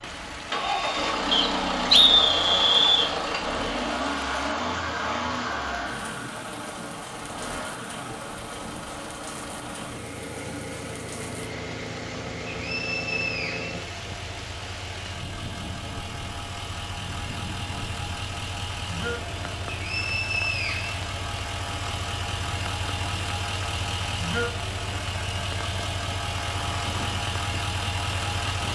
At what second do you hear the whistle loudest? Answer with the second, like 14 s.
2 s.